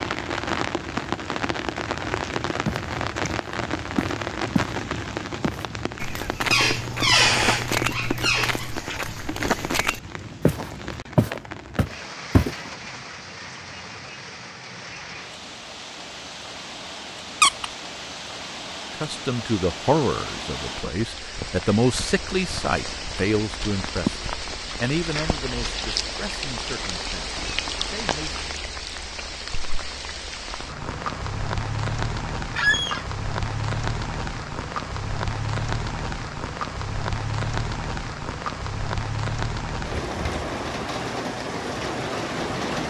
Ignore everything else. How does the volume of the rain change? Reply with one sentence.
The loudness of the rain goes down, then up.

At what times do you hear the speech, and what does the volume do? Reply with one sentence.
You can hear the speech from 18.9 to 28.4 s, getting quieter.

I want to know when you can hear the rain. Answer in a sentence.
You can hear the rain from 0.0 to 42.8 s.